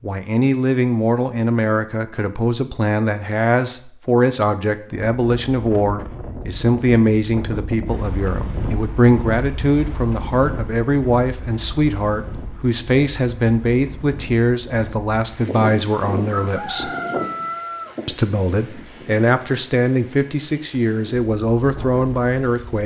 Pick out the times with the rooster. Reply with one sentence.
You can hear the rooster from 16.3 to 17.9 s.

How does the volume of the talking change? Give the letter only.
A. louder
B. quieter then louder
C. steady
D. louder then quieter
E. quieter
C.